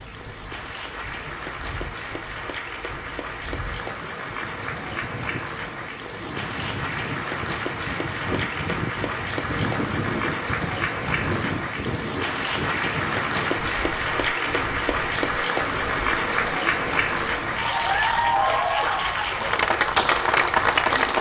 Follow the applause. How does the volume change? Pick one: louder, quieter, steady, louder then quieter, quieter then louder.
louder.